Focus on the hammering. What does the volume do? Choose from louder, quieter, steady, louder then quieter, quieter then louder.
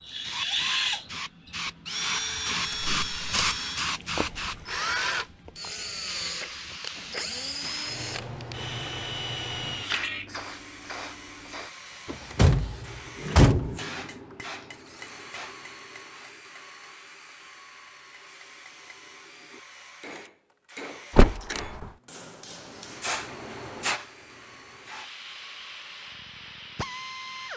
quieter then louder.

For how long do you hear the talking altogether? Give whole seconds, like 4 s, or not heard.
not heard.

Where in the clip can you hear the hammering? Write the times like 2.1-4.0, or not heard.
12.6-23.1.